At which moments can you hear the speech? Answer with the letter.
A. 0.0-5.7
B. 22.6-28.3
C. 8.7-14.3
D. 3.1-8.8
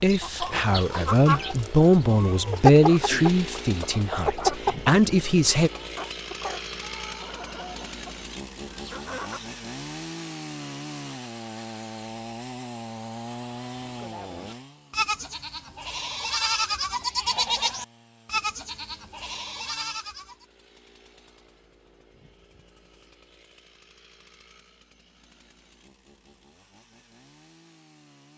A.